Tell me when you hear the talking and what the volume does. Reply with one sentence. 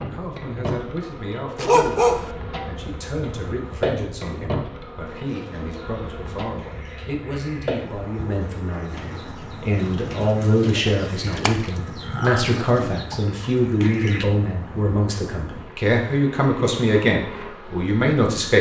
You can hear the talking from 0.1 to 18.5 s, getting louder.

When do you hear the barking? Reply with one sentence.
The barking can be heard from 1.6 to 2.3 s.